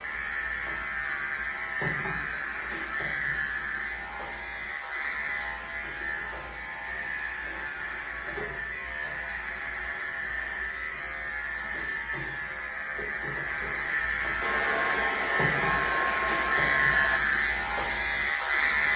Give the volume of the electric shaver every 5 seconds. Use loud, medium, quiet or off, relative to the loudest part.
medium, medium, medium, loud.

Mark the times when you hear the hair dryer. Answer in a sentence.
The hair dryer can be heard from 14.4 to 17.2 s.